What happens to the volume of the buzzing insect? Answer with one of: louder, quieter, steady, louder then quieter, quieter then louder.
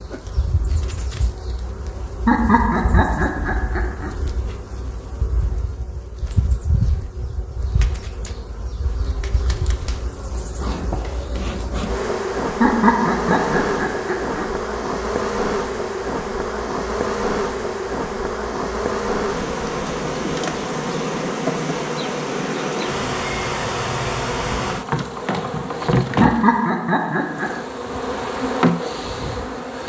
louder.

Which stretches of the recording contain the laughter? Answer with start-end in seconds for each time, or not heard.
2.2-4.1, 12.6-14.4, 26.2-27.6.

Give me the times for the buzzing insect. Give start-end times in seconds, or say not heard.
0.0-29.8.